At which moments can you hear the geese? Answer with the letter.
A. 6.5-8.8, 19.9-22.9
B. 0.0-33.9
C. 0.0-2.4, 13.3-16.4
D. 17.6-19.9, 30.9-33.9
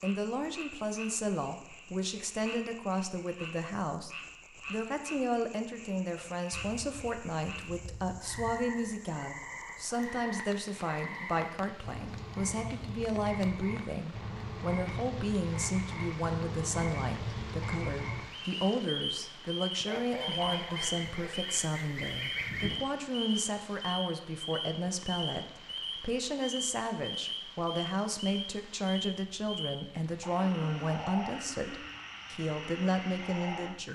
A.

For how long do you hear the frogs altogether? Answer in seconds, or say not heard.
34 s.